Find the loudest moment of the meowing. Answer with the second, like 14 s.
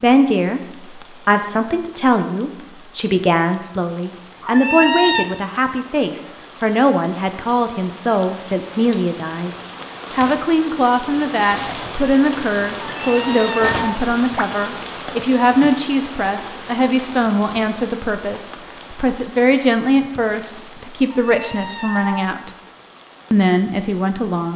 5 s.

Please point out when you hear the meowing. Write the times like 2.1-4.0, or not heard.
4.4-5.2, 12.8-14.4, 21.1-22.2.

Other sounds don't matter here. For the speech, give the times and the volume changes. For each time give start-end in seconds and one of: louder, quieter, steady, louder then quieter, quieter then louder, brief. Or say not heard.
0.0-9.5 steady
10.1-22.5 steady
23.3-24.5 brief.